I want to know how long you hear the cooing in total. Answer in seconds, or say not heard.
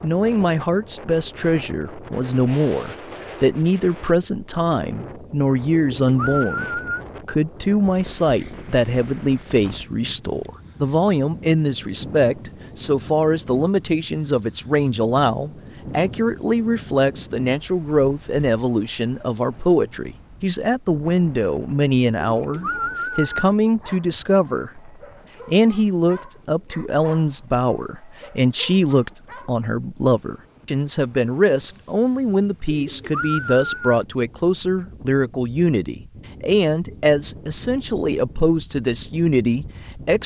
4 s.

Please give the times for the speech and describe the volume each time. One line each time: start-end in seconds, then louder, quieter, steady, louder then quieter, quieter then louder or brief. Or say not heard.
0.0-40.2 steady.